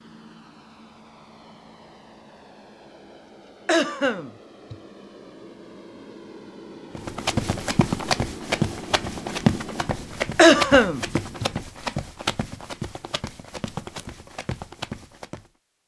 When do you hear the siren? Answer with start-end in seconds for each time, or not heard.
not heard.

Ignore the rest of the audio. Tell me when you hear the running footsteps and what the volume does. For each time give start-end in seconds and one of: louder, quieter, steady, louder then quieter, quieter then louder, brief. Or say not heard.
7.0-15.5 quieter.